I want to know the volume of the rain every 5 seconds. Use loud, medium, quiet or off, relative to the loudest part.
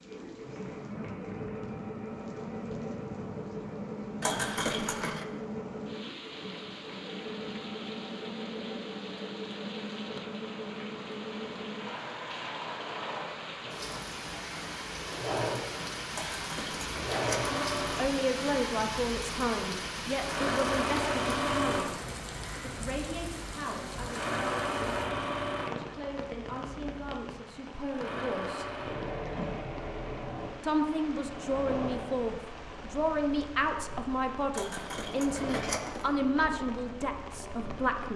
medium, medium, medium, loud, loud, medium, medium, medium.